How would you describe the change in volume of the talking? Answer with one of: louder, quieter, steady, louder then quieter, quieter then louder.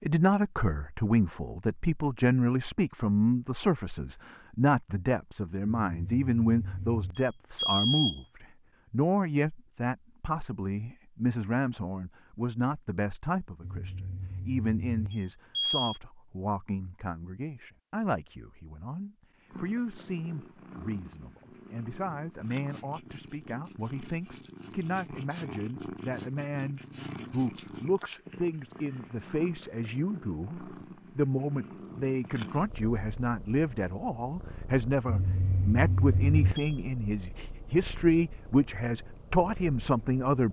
quieter then louder.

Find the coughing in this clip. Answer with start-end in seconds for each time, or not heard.
not heard.